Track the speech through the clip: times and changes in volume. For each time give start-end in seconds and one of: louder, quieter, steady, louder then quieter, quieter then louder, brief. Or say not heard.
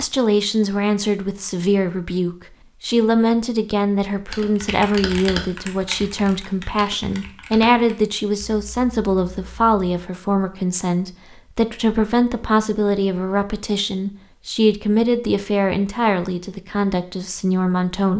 0.0-18.1 steady.